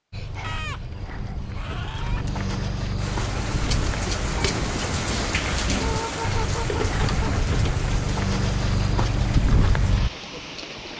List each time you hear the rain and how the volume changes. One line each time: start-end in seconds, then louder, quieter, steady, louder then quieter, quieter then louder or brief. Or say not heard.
3.0-10.9 quieter.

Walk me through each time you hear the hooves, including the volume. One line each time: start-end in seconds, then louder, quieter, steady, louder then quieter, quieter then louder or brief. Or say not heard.
0.1-10.1 louder.